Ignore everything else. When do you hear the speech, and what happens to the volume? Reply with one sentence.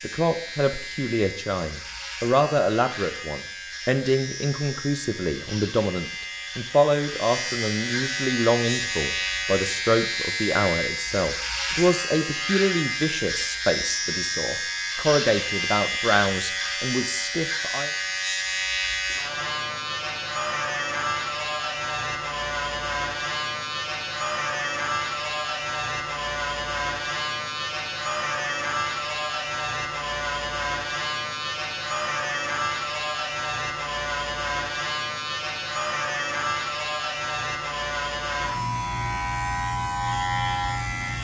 The speech can be heard from 0.0 to 17.9 s, at a steady volume.